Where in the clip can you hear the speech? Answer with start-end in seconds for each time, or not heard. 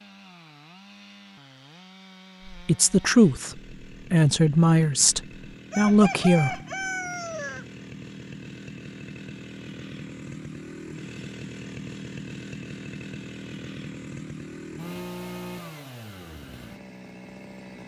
2.5-6.5.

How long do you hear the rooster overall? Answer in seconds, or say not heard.
2 s.